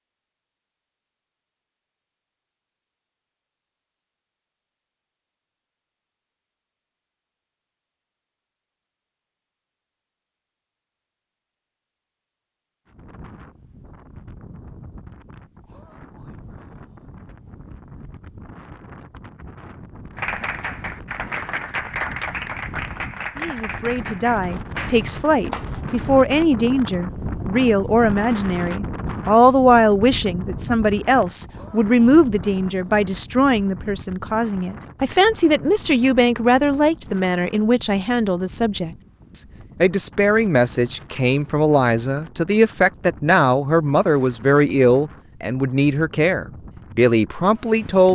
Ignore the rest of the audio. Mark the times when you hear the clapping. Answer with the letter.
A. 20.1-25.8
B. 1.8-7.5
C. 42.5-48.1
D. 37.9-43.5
A.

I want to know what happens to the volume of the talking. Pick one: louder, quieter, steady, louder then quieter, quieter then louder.
steady.